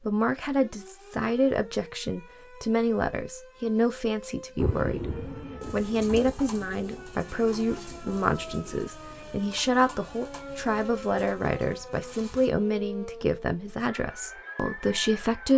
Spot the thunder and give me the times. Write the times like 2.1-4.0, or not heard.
4.5-6.3.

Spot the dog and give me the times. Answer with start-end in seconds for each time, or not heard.
not heard.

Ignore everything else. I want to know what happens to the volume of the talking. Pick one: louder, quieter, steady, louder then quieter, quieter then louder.
steady.